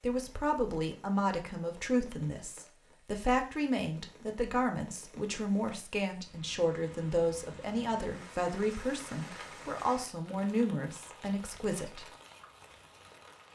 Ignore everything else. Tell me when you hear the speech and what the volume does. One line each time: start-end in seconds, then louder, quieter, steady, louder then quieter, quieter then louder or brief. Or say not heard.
0.0-12.1 steady.